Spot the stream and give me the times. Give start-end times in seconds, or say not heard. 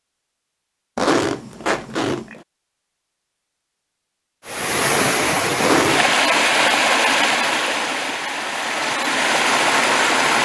4.5-10.4.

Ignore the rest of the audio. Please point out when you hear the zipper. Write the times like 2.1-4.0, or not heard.
0.9-2.4, 5.6-6.2.